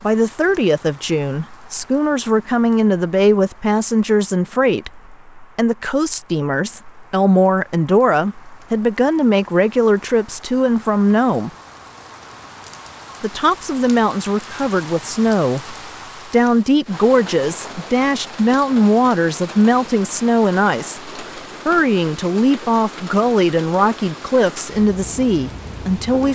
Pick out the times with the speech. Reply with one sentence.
You can hear the speech from 0.0 to 11.5 s and from 13.2 to 26.2 s.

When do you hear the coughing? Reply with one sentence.
You can't hear the coughing here.